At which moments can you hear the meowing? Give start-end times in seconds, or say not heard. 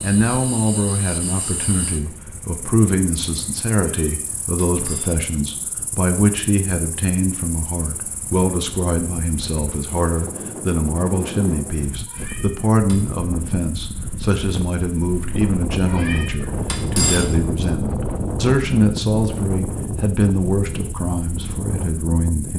3.8-5.2, 12.1-12.9, 15.8-17.2.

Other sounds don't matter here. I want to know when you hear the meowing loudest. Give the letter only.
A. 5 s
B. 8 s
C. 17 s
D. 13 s
C.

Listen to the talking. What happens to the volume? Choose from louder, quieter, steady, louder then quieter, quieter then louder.
steady.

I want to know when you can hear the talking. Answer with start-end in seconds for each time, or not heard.
0.0-22.5.